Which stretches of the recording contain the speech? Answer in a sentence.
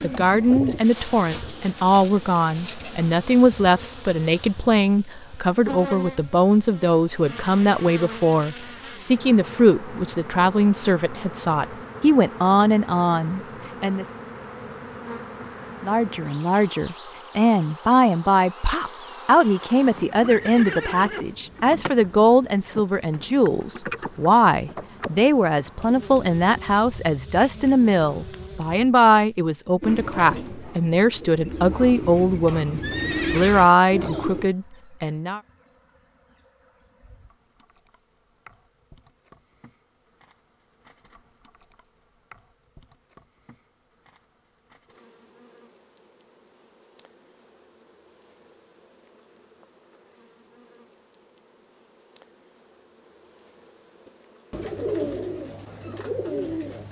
The speech can be heard from 0.0 to 14.1 s and from 15.8 to 35.4 s.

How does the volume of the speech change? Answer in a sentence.
The loudness of the speech stays about the same.